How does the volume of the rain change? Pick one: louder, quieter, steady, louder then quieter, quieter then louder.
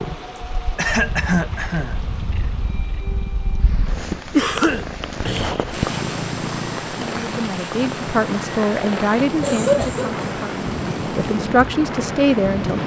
louder.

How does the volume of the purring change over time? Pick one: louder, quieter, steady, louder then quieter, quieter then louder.
louder then quieter.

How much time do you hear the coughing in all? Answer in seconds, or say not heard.
4 s.